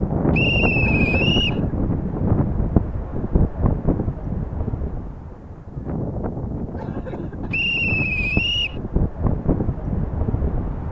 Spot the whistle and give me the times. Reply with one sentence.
You can hear the whistle from 0.3 to 1.6 s and from 7.5 to 8.8 s.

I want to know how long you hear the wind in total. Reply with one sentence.
You can hear the wind for 11 seconds altogether.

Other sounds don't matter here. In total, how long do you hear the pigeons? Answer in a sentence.
The pigeons can't be heard in this clip.